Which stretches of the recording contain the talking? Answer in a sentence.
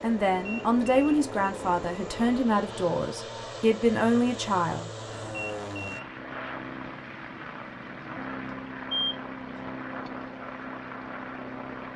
The talking can be heard from 0.0 to 4.9 s.